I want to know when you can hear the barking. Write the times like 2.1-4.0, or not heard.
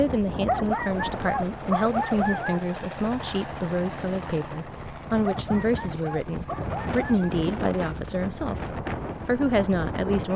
0.5-2.6, 5.2-7.3.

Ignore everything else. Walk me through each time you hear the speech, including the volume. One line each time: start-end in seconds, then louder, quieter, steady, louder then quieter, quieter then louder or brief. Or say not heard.
0.0-10.3 steady.